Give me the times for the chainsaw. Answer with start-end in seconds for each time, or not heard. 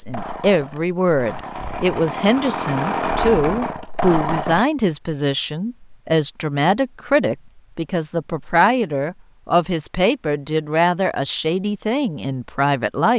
0.0-4.7.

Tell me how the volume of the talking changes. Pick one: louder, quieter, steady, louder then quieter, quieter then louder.
steady.